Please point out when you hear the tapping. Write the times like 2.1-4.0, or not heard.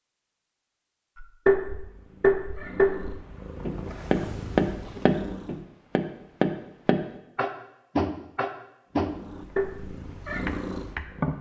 1.2-11.3.